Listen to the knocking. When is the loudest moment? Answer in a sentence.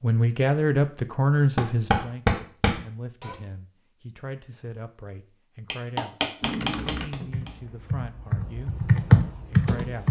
The volume of the knocking peaks at 2 seconds.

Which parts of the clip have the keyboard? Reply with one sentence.
The keyboard can be heard from 6.4 to 10.0 s.